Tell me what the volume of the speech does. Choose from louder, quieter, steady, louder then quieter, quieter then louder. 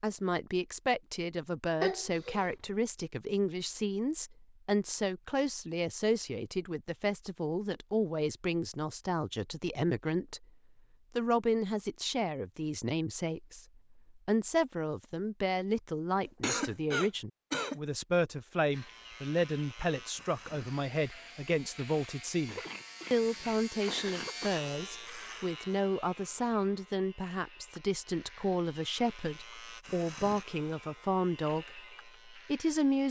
steady.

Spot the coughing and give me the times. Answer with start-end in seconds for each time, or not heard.
1.8-2.5, 16.2-17.8, 22.4-24.5.